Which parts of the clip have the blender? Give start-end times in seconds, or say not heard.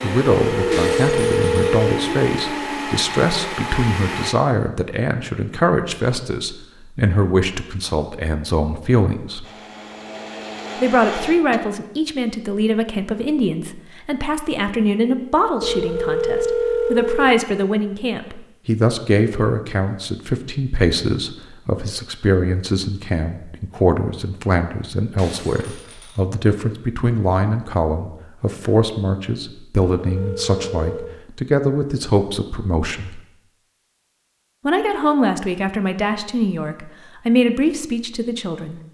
0.0-4.3, 9.4-11.6.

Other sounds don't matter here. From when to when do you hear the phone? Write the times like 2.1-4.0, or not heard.
0.5-1.9, 15.6-17.3, 29.9-31.1.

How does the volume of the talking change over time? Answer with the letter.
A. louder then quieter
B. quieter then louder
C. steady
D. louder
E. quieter
C.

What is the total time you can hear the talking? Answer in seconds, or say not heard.
36 s.